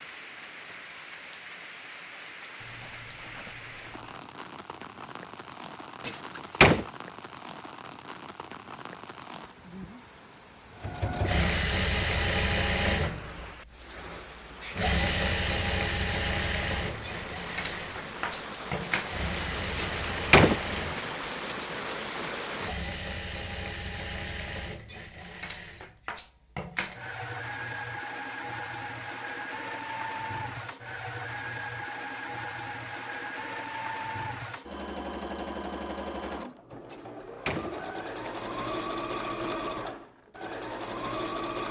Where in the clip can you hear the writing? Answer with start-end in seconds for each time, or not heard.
2.6-4.2.